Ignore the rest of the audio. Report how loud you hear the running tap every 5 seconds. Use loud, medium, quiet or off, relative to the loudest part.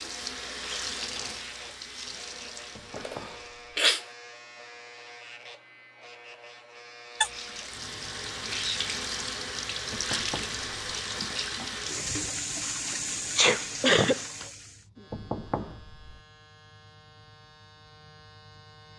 medium, loud, loud, off.